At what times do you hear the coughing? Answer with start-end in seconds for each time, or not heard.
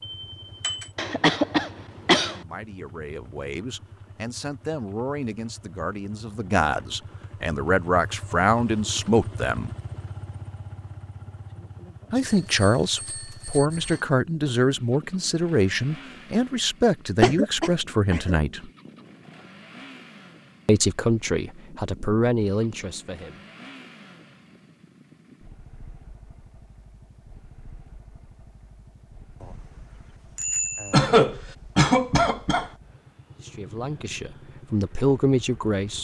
0.9-2.4, 17.2-18.4, 30.9-32.7.